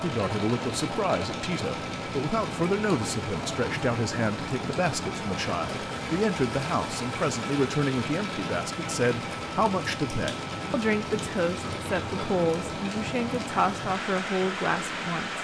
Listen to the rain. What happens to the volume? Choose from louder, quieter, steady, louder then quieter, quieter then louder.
steady.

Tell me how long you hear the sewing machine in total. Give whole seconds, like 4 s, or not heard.
15 s.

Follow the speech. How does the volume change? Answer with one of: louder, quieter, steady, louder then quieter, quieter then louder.
steady.